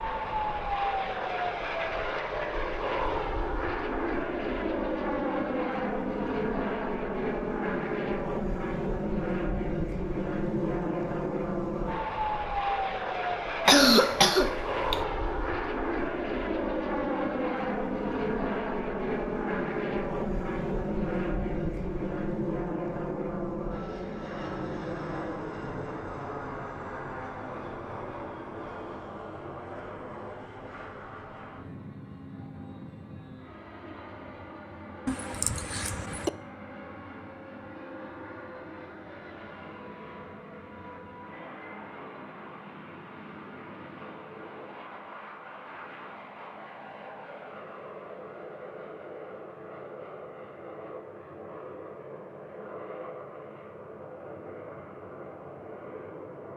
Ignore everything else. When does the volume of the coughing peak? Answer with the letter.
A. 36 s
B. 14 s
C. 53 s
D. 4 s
B.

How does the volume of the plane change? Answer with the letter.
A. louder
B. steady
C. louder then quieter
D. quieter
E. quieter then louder
D.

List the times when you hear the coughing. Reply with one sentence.
The coughing can be heard from 13.7 to 15.0 s and from 35.0 to 36.3 s.